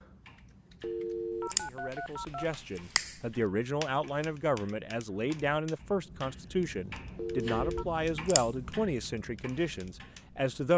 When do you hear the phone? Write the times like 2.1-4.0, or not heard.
0.8-2.5, 7.2-7.8.